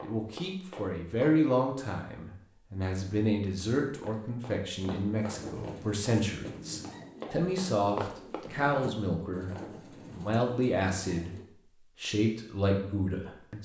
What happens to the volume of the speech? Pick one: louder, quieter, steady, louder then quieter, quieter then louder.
steady.